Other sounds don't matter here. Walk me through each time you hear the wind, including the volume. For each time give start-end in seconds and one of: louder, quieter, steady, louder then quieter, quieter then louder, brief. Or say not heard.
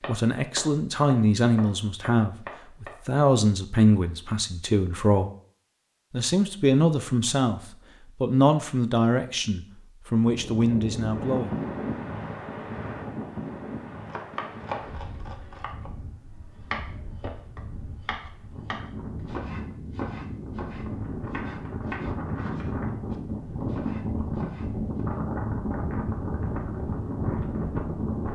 10.2-28.2 quieter then louder.